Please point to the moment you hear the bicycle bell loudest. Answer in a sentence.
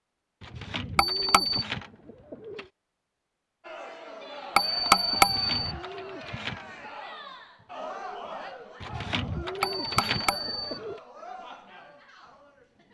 The volume of the bicycle bell peaks at 5 seconds.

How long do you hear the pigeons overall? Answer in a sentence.
You can hear the pigeons for 6 seconds altogether.